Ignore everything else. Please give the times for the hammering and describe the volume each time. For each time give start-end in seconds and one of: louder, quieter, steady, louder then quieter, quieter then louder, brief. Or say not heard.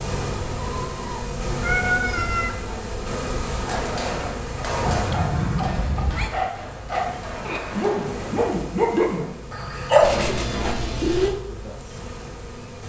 3.5-8.5 quieter then louder.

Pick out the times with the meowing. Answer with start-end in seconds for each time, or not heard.
0.6-2.5, 4.8-6.3, 10.0-11.3.